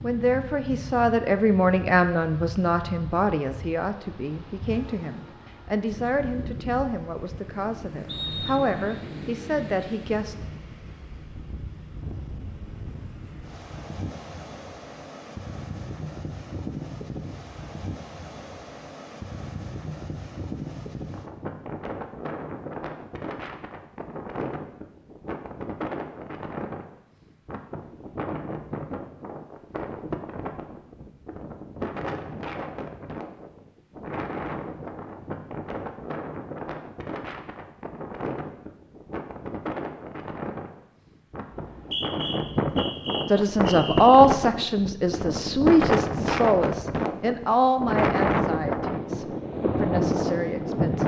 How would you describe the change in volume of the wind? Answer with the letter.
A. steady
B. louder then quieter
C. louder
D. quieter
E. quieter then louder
C.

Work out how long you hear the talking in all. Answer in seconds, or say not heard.
18 s.